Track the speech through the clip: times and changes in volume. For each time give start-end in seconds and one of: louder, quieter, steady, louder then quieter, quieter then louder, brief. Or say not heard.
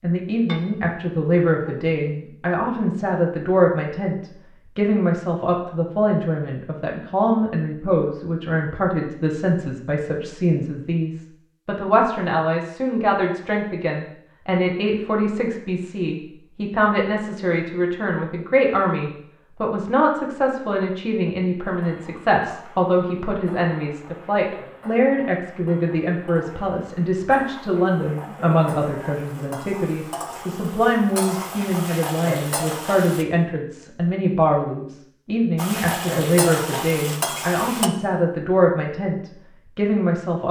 0.0-40.4 steady.